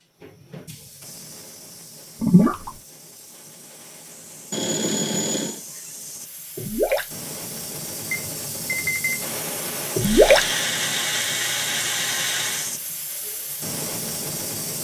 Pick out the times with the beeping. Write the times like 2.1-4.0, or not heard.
4.5-5.6, 8.1-9.3.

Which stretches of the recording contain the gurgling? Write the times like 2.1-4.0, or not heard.
2.2-2.7, 6.5-7.0, 9.9-10.4.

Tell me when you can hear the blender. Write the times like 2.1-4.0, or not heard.
9.9-12.8.